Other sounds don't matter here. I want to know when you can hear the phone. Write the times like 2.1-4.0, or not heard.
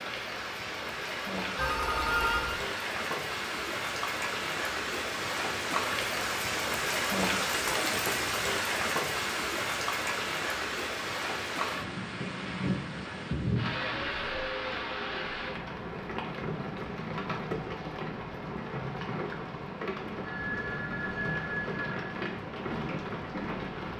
1.6-2.6, 20.2-22.2.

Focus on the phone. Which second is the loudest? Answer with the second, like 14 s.
2 s.